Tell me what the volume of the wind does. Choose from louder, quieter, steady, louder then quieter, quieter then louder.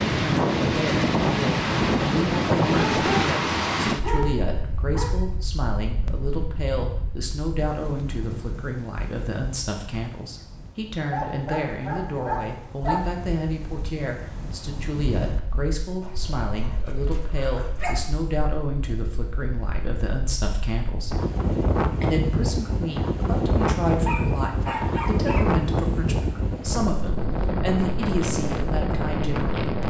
quieter then louder.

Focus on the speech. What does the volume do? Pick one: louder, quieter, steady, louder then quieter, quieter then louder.
steady.